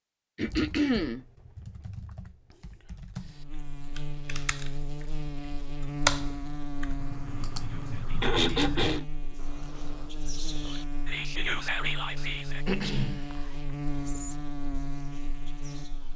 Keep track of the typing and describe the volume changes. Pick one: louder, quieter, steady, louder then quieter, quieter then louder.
louder then quieter.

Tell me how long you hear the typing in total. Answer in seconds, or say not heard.
10 s.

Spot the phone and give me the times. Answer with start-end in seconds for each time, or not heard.
not heard.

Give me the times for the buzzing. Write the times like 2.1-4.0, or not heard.
3.2-16.1.